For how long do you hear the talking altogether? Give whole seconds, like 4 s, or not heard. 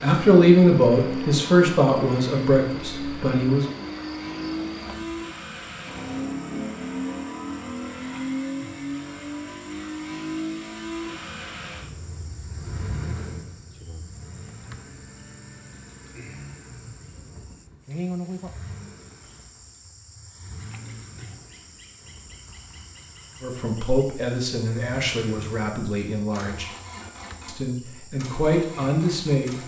9 s.